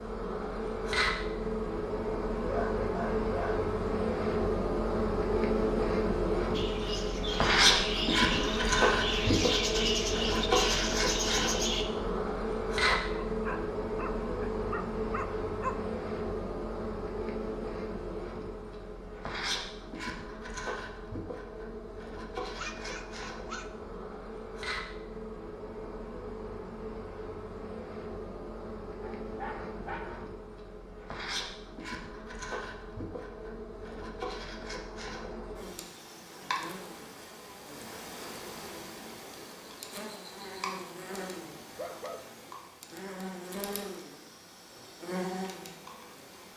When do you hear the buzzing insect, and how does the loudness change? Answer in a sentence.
The buzzing insect can be heard from 0.0 to 46.5 s, getting quieter.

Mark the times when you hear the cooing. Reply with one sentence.
You can hear the cooing from 6.5 to 11.8 s.